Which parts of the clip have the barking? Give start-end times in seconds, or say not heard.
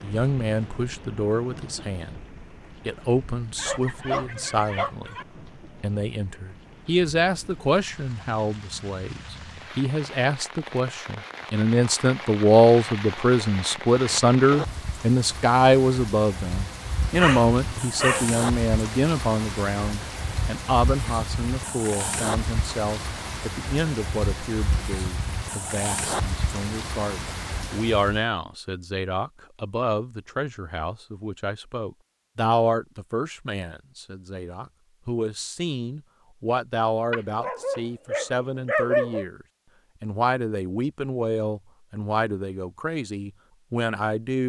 3.5-5.2, 17.1-18.3, 37.1-39.2.